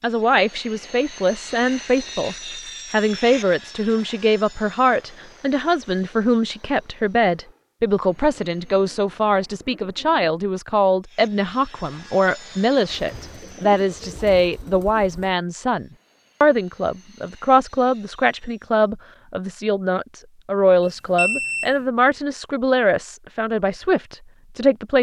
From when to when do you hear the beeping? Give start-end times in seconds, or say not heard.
21.1-21.7.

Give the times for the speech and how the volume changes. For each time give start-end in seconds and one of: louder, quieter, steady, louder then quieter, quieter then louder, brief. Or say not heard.
0.0-24.9 steady.